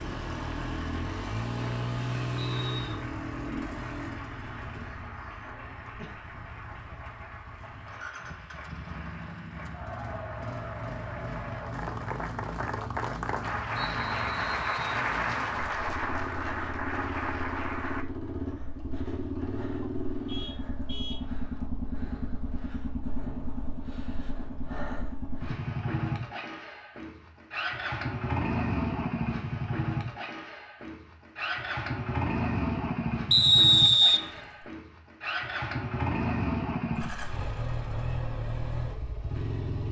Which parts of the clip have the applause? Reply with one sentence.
The applause can be heard from 0.0 to 18.1 s.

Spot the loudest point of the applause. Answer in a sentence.
The volume of the applause peaks at 15 seconds.